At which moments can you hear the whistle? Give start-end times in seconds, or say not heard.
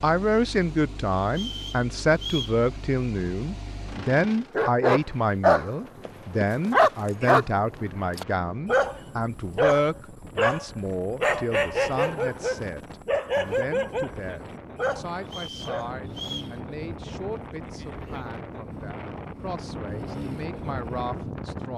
1.3-2.6, 15.2-16.6.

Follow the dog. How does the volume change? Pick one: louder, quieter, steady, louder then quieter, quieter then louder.
quieter.